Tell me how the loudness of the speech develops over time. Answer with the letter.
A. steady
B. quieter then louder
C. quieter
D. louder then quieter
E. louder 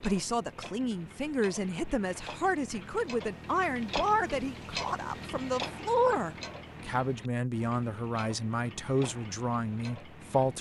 A.